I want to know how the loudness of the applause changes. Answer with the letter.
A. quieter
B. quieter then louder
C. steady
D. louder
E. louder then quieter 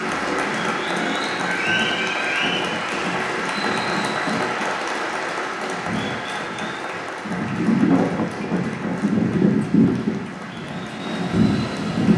A.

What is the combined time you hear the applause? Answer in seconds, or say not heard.
12 s.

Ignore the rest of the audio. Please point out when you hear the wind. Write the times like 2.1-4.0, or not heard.
0.0-12.1.